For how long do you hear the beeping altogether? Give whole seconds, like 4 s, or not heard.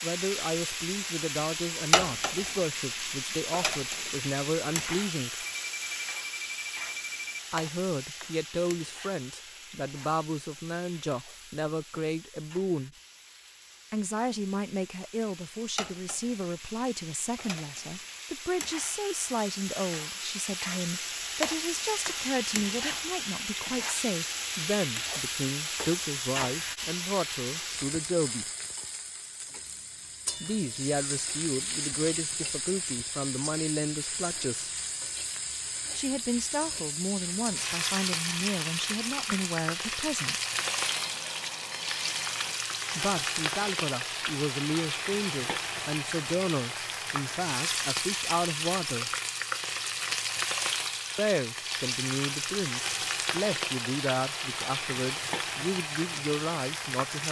4 s.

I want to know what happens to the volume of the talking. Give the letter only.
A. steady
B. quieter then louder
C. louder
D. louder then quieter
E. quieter
A.